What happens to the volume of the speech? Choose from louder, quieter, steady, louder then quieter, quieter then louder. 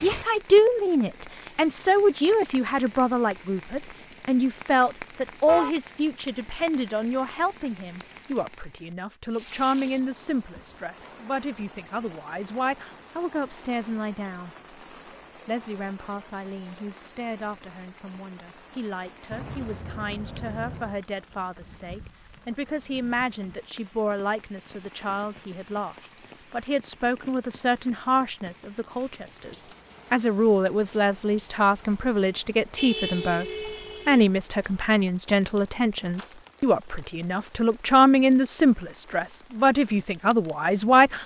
quieter then louder.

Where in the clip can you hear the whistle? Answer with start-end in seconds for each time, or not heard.
not heard.